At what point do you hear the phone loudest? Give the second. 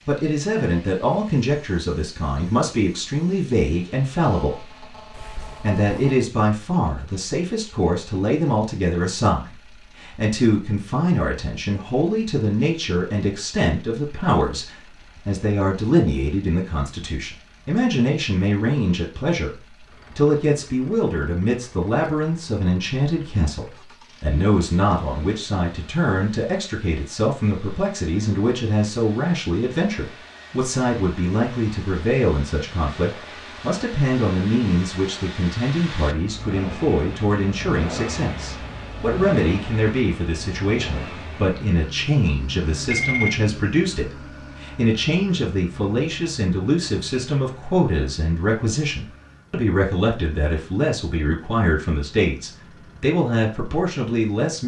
43 s.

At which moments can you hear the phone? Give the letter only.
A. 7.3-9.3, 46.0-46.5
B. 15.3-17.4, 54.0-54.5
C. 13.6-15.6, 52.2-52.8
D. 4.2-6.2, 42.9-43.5
D.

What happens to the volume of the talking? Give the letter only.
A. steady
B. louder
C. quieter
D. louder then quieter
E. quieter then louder
A.